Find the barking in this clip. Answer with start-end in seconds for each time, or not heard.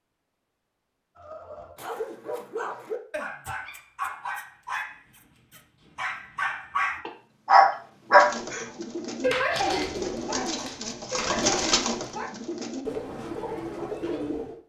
1.1-12.3.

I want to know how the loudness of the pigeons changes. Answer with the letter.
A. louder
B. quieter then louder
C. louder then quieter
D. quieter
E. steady
C.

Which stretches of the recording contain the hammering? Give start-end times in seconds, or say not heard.
not heard.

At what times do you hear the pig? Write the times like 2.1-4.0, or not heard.
not heard.